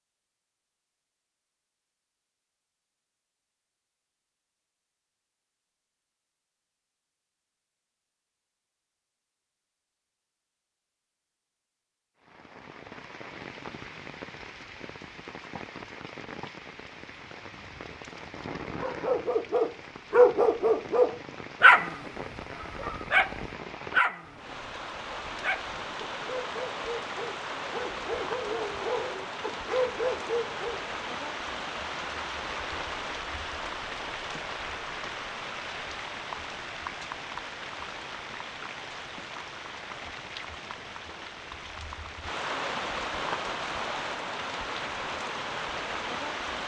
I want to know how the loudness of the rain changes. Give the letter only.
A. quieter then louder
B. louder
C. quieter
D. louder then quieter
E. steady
B.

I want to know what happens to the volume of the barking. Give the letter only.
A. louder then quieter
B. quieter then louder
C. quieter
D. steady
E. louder
B.